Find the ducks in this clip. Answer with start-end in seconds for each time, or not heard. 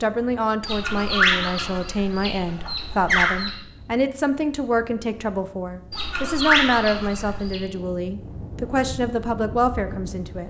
0.6-3.5, 5.9-7.6.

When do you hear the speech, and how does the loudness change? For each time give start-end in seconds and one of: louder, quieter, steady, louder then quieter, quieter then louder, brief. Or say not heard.
0.0-10.4 steady.